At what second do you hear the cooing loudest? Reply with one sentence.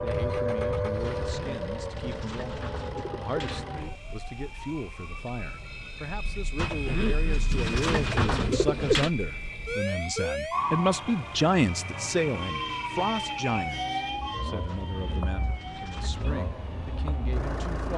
The volume of the cooing peaks at 9 seconds.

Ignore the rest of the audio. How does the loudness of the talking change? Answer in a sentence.
The volume of the talking goes up, then down.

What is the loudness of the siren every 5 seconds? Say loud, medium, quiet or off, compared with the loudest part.
loud, medium, loud, medium.